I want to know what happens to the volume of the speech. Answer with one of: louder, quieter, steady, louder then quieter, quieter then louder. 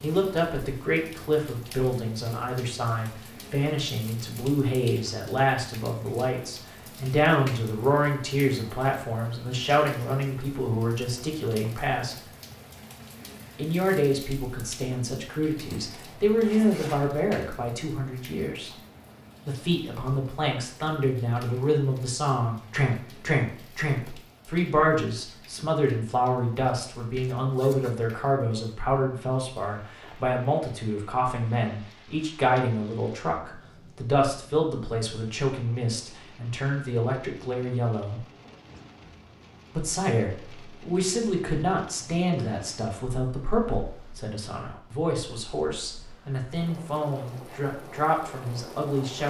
steady.